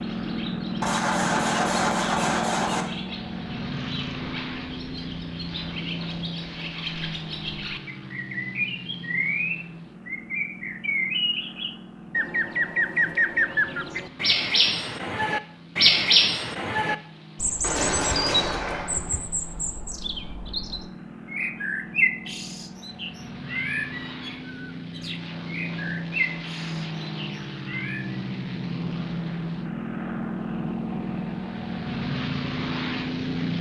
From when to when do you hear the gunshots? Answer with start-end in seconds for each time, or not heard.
0.8-2.9, 17.6-19.2.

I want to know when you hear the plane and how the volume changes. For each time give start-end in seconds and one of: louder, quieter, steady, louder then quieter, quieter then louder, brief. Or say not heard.
0.0-33.5 quieter then louder.